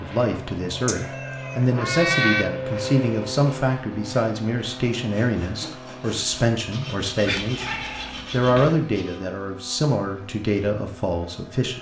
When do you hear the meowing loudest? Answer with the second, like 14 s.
2 s.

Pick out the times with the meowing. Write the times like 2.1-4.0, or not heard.
0.8-2.5, 7.2-8.9.